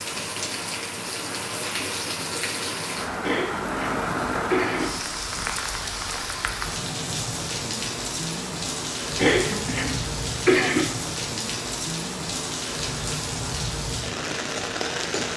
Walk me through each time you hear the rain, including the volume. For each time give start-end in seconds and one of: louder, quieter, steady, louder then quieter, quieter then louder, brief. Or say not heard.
0.0-15.3 steady.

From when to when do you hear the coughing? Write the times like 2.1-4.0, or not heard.
3.2-4.9, 9.2-10.8.